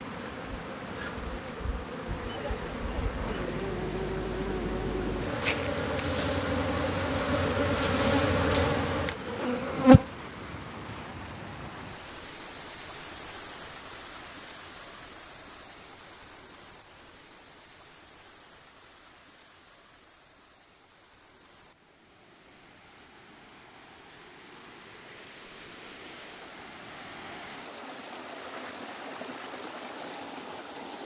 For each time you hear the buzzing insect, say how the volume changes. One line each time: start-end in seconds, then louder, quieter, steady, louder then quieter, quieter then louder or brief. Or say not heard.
0.0-10.1 louder.